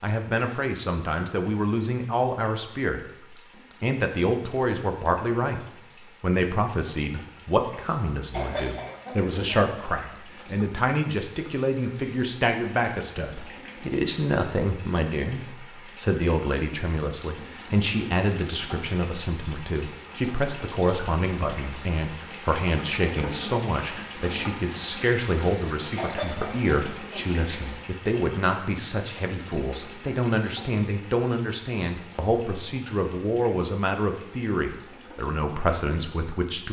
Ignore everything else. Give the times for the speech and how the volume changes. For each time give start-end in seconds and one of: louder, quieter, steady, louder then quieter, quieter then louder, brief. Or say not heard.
0.0-36.6 steady.